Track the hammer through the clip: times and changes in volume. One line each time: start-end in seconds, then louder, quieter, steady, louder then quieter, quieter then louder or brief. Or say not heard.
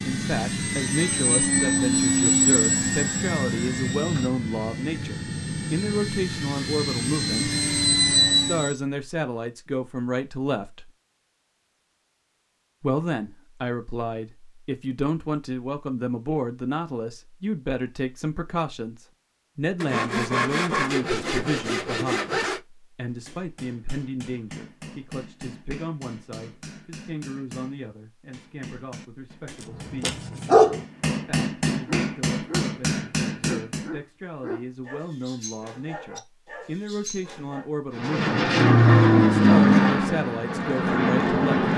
23.1-34.0 louder.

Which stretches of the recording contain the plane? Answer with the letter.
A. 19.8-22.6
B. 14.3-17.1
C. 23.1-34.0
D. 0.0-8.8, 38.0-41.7
D.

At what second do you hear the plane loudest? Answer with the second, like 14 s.
39 s.